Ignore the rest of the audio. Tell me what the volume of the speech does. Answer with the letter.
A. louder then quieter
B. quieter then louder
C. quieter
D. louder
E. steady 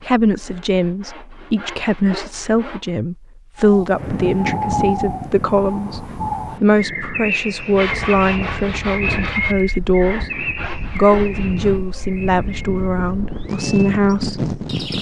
E.